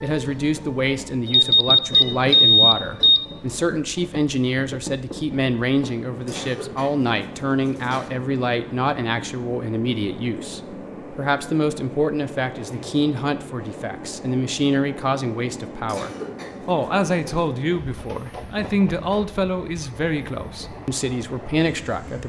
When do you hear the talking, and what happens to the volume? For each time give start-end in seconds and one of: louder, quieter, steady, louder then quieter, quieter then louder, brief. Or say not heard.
0.0-22.2 steady.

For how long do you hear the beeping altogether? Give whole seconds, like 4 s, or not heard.
2 s.